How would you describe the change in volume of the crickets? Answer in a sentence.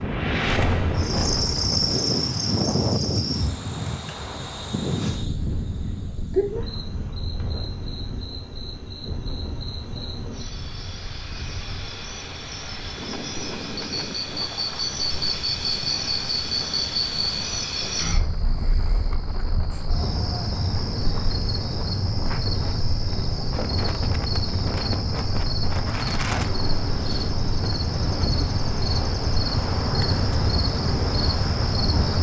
The volume of the crickets goes down, then up.